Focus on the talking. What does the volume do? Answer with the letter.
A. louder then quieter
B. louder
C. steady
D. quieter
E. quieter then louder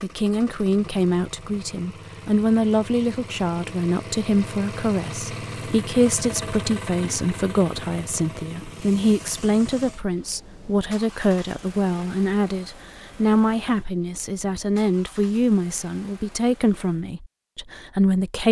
C.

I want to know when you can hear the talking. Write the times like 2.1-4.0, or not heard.
0.0-18.4.